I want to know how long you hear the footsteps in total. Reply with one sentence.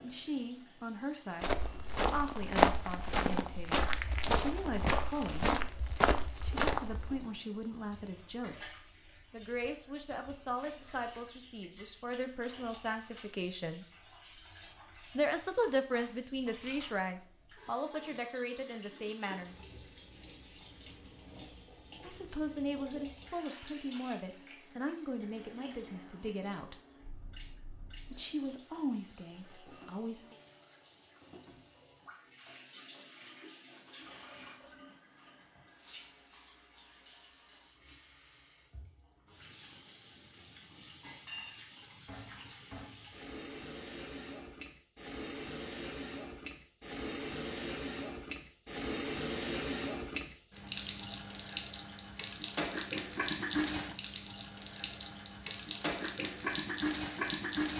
The footsteps can be heard for 6 seconds in total.